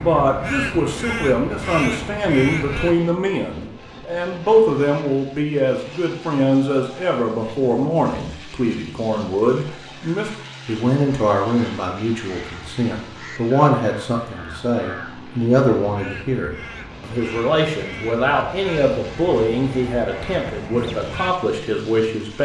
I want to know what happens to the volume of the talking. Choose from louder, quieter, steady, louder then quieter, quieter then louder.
steady.